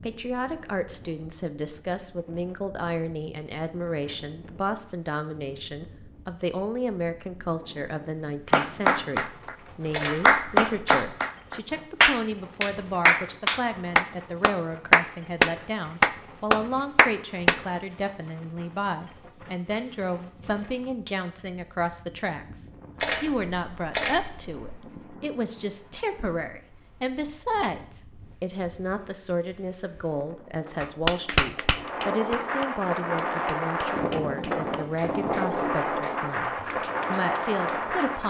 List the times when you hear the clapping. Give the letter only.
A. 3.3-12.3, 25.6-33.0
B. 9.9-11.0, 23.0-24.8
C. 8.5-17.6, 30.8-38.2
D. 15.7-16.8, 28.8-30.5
C.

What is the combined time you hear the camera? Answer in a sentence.
The camera can be heard for 3 seconds in total.